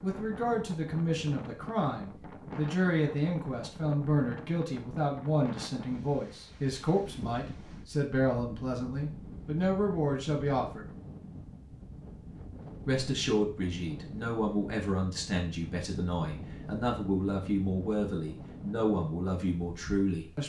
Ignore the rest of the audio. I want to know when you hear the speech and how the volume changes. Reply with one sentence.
You can hear the speech from 0.0 to 10.8 s, at a steady volume; and from 12.8 to 20.4 s, at a steady volume.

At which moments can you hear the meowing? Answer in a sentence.
The meowing can't be heard in this clip.